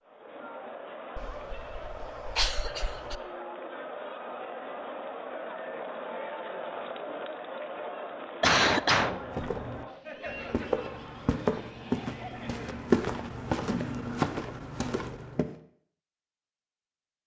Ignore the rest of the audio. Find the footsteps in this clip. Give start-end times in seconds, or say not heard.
9.1-15.4.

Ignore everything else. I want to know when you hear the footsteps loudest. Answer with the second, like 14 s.
13 s.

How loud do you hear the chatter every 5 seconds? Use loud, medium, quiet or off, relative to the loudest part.
loud, loud, medium, off.